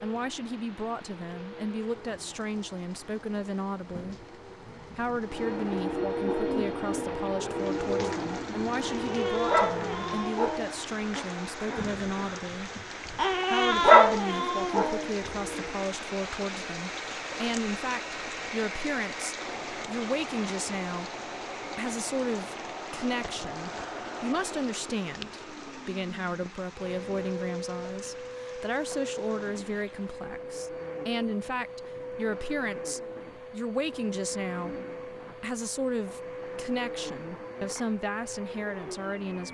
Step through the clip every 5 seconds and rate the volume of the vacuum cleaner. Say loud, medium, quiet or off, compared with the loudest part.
quiet, loud, medium, medium, medium, medium, medium, medium.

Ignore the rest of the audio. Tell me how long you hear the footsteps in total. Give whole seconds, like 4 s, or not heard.
not heard.